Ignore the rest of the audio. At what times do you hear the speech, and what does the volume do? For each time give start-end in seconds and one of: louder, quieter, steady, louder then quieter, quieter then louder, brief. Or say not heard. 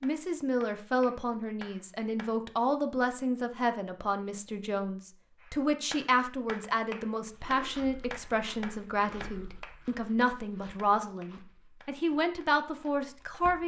0.0-13.6 steady.